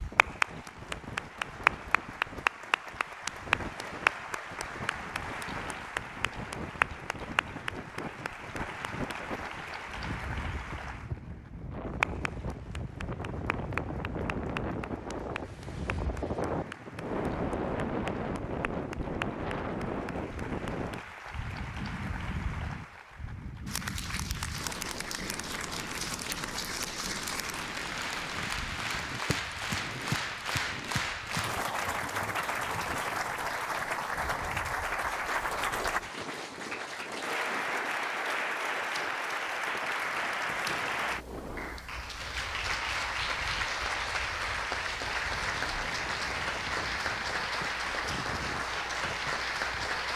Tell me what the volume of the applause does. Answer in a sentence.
The volume of the applause goes down, then up.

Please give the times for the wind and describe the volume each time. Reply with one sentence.
You can hear the wind from 0.0 to 50.1 s, getting louder then quieter.